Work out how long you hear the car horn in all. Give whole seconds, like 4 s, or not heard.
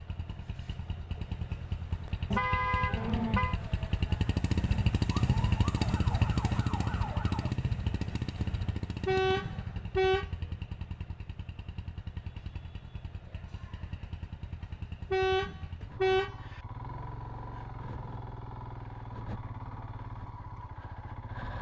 4 s.